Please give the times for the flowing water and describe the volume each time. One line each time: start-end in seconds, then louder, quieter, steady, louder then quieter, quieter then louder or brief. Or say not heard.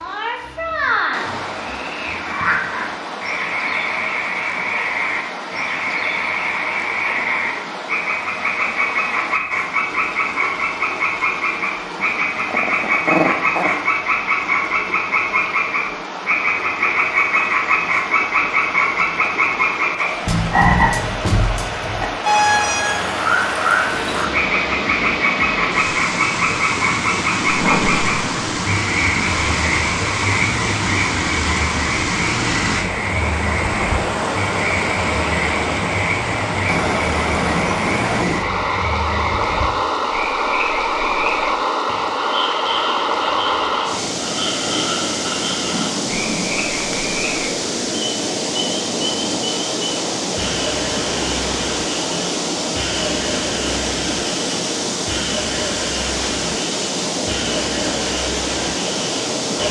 0.0-59.6 louder.